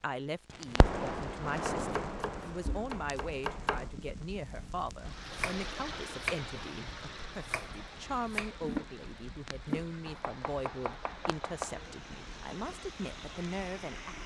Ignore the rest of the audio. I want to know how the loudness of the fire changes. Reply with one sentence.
The volume of the fire goes down.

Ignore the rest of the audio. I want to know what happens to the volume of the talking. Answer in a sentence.
The volume of the talking stays about the same.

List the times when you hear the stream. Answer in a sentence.
The stream can be heard from 5.0 to 14.2 s.